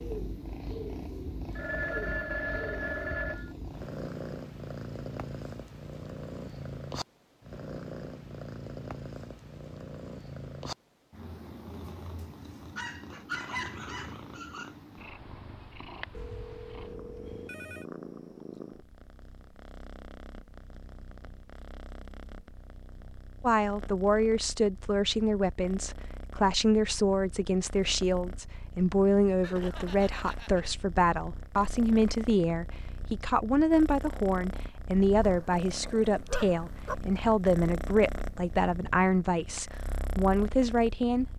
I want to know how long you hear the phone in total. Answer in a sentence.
The phone can be heard for 5 seconds in total.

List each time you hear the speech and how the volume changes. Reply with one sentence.
The speech can be heard from 23.4 to 41.3 s, at a steady volume.